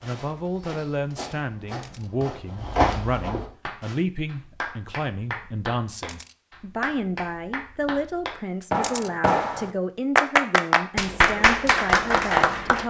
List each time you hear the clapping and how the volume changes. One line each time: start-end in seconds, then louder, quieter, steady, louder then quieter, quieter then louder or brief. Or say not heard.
3.6-12.8 louder.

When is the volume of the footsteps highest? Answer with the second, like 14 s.
3 s.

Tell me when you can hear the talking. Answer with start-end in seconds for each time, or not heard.
0.0-12.8.